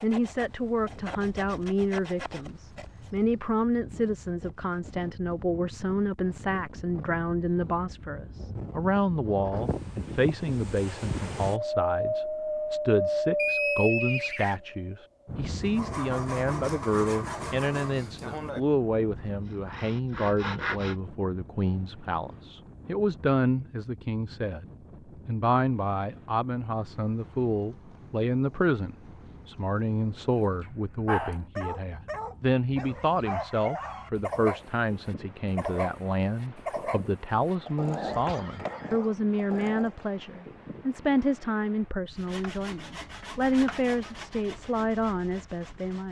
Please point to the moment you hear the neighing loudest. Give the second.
14 s.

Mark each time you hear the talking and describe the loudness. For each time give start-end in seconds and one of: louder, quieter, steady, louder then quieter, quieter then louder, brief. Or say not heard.
0.0-46.0 steady.